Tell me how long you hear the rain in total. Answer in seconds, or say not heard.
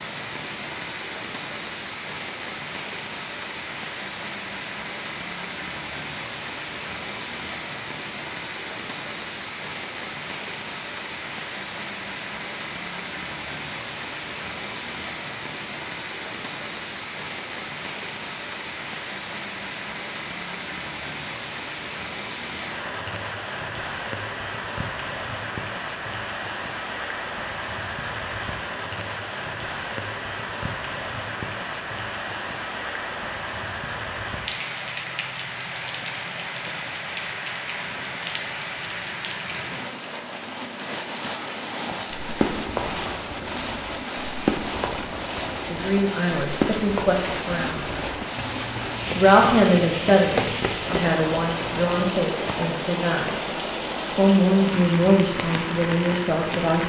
57 s.